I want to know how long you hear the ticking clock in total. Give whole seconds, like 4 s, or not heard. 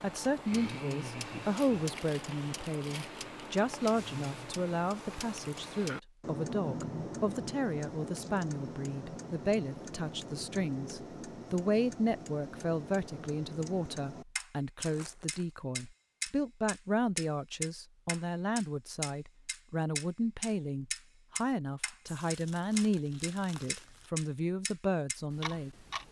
26 s.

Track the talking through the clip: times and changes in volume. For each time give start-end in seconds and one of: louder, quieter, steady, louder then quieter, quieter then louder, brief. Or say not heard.
0.0-25.8 steady.